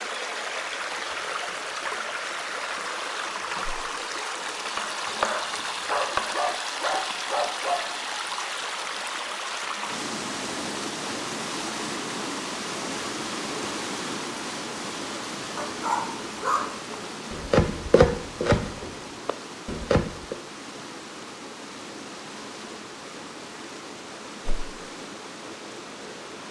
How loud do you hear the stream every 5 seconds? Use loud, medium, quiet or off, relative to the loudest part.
loud, loud, loud, medium, medium, medium.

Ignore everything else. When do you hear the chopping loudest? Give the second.
18 s.